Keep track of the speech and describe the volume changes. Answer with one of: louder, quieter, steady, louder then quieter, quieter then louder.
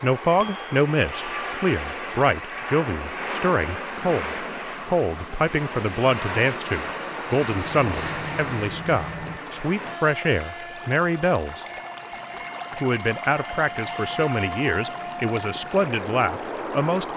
steady.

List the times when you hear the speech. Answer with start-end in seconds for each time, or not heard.
0.0-11.7, 12.8-17.1.